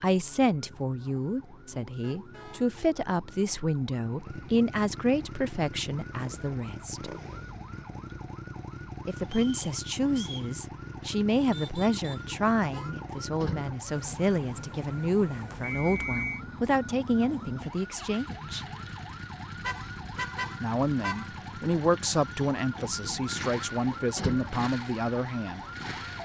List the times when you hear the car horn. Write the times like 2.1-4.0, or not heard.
2.0-2.6, 11.5-12.9, 19.6-21.3.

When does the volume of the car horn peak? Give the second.
20 s.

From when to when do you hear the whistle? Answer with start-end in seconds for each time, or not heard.
9.3-10.5, 15.6-16.4.